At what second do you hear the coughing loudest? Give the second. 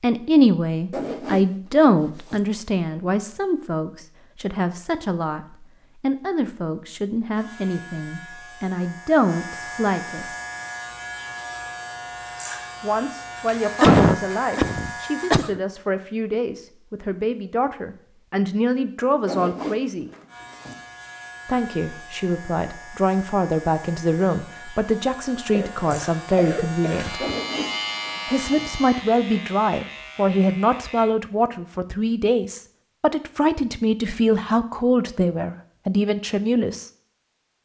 14 s.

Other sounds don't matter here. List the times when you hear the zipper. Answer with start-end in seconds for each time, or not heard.
0.9-2.4, 19.2-20.8, 27.2-28.7.